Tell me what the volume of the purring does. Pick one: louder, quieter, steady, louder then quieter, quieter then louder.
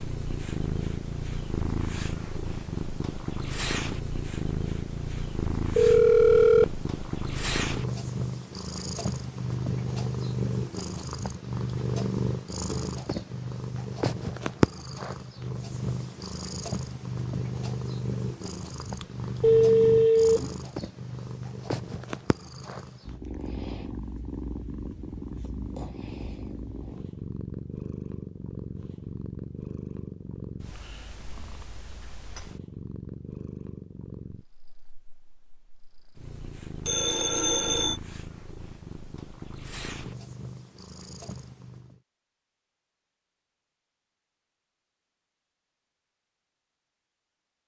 quieter.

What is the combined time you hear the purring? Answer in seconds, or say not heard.
42 s.